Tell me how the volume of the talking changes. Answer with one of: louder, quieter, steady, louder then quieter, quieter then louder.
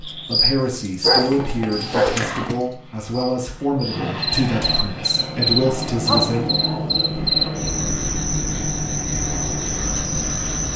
steady.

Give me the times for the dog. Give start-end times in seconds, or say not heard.
1.0-2.5, 5.9-7.5.